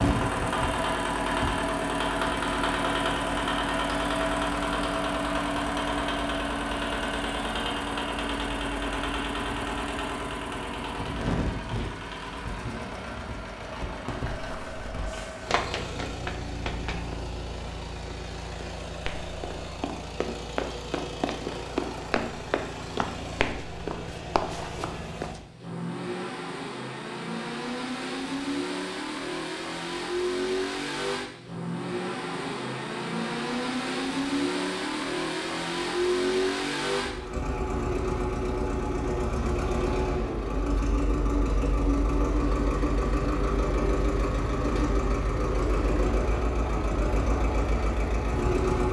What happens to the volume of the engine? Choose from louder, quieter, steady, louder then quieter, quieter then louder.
quieter then louder.